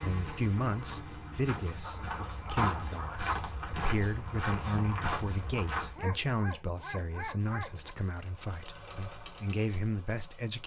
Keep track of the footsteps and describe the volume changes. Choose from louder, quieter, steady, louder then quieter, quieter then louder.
louder.